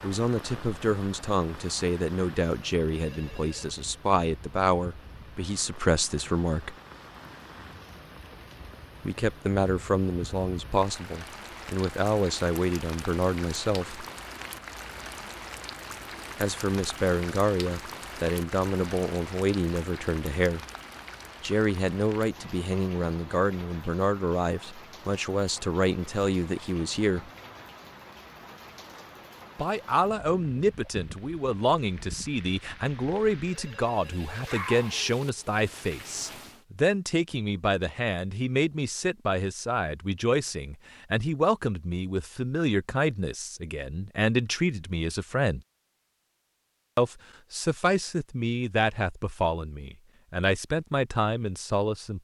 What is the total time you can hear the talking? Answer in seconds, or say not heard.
43 s.